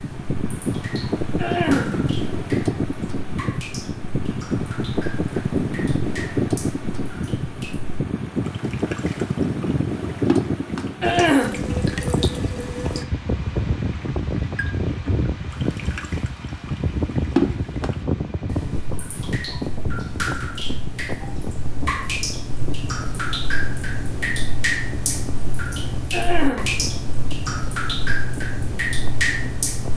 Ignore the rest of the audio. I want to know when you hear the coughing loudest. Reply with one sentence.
The volume of the coughing peaks at 11 seconds.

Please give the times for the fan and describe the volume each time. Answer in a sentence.
You can hear the fan from 0.0 to 29.9 s, getting quieter.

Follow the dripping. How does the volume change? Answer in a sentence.
The loudness of the dripping goes up.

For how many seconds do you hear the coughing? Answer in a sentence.
The coughing can be heard for 2 seconds in total.